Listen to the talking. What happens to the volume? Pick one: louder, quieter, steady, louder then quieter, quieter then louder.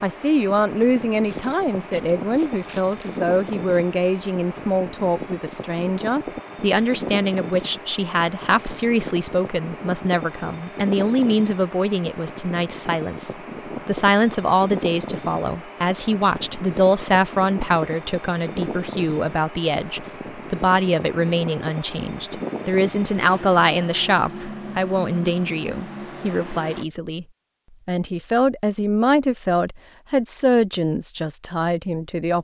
steady.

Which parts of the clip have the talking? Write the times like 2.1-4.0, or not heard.
0.0-27.2, 27.9-32.4.